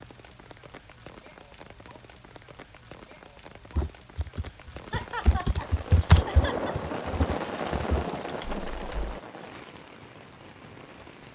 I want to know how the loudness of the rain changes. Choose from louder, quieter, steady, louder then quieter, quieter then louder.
louder then quieter.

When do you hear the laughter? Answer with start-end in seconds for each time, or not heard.
4.9-6.8.